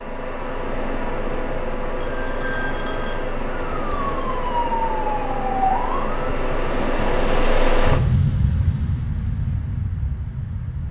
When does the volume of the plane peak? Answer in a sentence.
The volume of the plane peaks at 8 seconds.